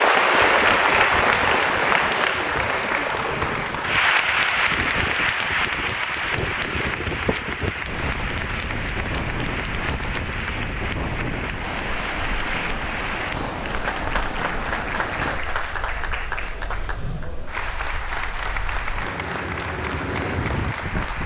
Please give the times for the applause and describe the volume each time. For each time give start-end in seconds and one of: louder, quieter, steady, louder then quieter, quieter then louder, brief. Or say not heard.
0.0-21.2 quieter.